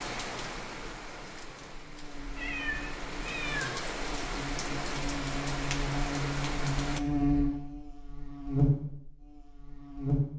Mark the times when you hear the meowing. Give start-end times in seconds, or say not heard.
2.4-3.9.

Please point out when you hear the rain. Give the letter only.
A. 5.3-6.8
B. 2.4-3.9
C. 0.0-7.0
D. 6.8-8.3
C.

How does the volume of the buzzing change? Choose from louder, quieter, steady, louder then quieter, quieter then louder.
louder.